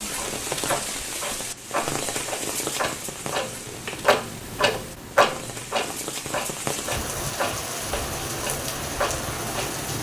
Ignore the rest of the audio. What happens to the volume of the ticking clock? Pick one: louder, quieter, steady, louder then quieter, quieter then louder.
louder then quieter.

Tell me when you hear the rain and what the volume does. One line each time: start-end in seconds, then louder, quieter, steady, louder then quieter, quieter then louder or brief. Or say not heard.
0.0-9.9 quieter then louder.